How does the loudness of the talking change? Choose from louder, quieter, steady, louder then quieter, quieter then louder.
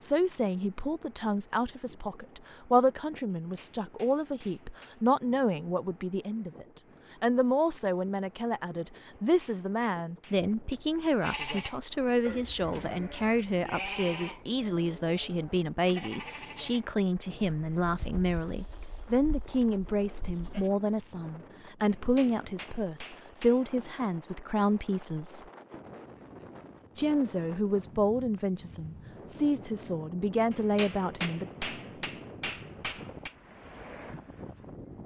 steady.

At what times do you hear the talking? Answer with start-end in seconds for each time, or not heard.
0.0-25.4, 26.9-31.4.